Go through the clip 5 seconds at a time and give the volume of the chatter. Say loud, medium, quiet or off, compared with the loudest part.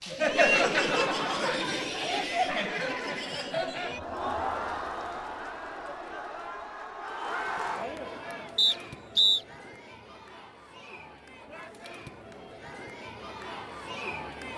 loud, medium, quiet.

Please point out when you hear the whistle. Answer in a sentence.
The whistle can be heard from 8.6 to 9.4 s.